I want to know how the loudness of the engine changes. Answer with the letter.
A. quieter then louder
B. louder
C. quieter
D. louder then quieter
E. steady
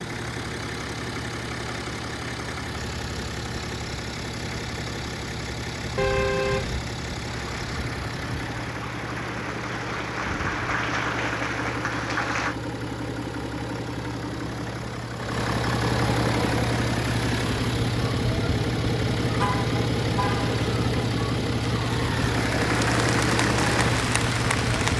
B.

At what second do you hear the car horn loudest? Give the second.
6 s.